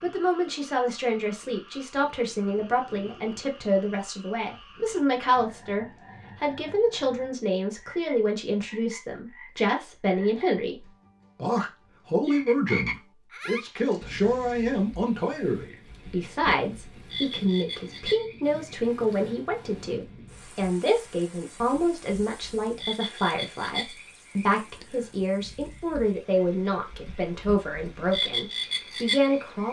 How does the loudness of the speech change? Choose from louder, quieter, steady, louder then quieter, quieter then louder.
steady.